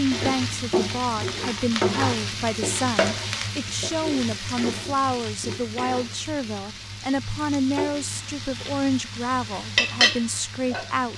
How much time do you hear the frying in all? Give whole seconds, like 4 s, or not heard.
11 s.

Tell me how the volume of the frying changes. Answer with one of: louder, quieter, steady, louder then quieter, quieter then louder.
quieter then louder.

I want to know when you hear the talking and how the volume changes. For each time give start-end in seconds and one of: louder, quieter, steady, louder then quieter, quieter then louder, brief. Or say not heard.
0.0-11.1 steady.